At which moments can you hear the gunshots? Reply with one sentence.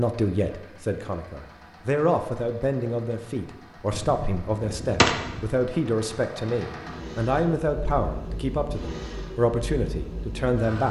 The gunshots can be heard from 3.9 to 5.5 s.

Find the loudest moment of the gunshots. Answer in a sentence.
The volume of the gunshots peaks at 5 seconds.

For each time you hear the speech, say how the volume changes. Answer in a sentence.
The speech can be heard from 0.0 to 10.8 s, at a steady volume.